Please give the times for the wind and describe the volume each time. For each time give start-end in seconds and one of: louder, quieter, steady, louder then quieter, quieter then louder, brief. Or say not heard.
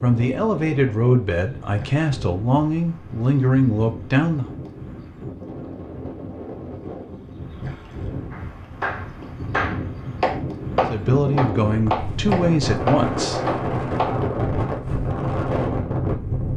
0.0-16.5 louder.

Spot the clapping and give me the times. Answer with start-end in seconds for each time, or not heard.
8.3-14.2.